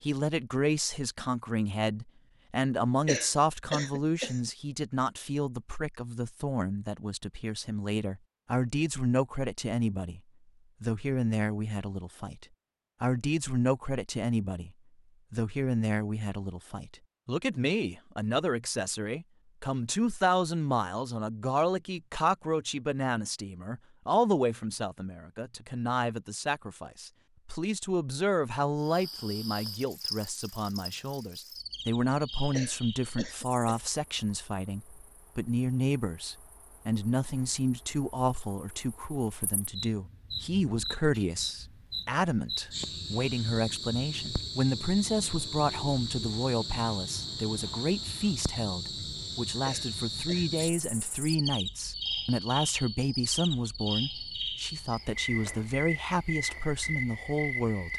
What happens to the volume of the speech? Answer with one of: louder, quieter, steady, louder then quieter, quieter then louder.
steady.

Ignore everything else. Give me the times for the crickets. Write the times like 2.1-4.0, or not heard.
28.8-57.9.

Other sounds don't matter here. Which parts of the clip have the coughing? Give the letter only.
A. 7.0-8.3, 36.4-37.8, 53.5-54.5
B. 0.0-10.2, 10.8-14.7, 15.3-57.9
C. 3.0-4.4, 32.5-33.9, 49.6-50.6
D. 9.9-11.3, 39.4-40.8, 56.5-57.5
C.